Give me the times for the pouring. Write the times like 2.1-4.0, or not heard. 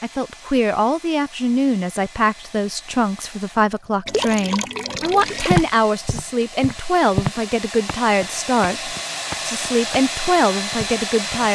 4.0-5.7.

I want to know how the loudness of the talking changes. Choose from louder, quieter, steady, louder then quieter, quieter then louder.
steady.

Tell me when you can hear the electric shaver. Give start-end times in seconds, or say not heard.
not heard.